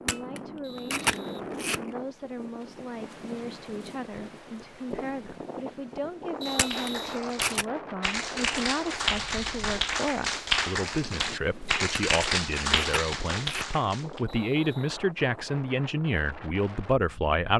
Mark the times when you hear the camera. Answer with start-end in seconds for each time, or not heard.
0.1-1.8, 6.5-7.7, 11.9-13.7.